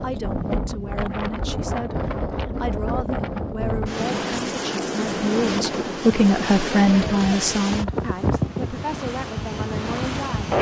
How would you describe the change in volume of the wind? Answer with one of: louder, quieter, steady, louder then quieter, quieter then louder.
steady.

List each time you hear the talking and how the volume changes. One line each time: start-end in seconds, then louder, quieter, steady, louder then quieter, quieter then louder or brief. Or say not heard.
0.0-10.5 louder then quieter.